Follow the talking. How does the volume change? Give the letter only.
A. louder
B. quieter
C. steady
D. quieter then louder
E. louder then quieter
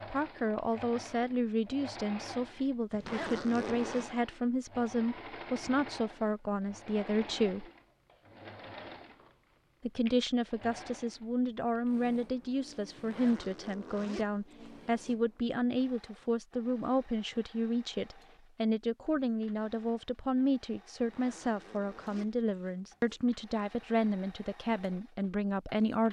C.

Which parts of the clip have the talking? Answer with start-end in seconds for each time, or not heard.
0.1-7.7, 9.8-26.0.